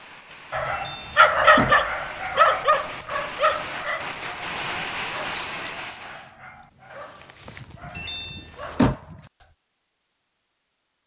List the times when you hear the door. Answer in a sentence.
You can hear the door from 0.7 to 1.9 s and from 8.0 to 8.9 s.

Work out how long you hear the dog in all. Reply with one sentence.
The dog can be heard for 9 seconds in total.